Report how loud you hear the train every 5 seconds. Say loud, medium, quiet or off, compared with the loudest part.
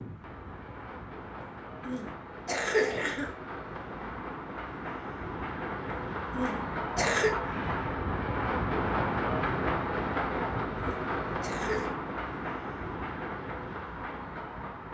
medium, loud, loud.